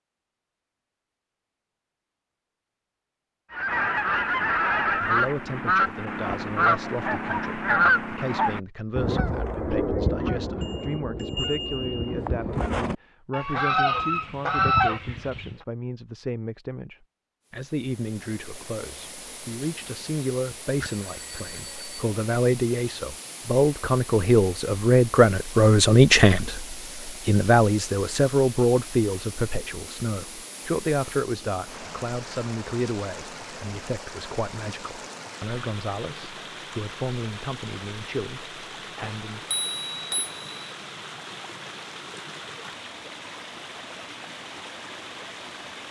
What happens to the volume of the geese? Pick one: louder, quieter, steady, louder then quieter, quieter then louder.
quieter then louder.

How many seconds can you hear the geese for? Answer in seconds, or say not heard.
12 s.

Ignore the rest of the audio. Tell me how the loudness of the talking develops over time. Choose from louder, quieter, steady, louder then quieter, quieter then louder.
louder then quieter.